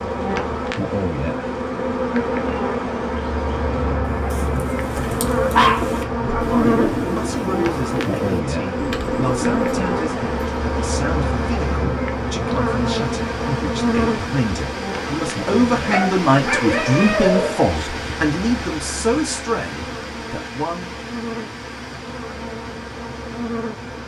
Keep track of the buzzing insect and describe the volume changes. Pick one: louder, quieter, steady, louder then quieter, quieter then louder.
quieter.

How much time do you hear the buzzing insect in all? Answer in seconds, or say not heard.
24 s.